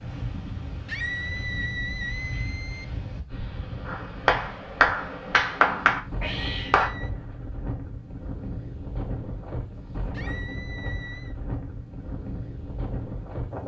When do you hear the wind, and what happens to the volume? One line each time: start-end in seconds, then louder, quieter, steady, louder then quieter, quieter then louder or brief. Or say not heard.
0.0-13.6 steady.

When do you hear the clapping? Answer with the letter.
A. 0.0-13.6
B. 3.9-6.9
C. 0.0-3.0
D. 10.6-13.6
B.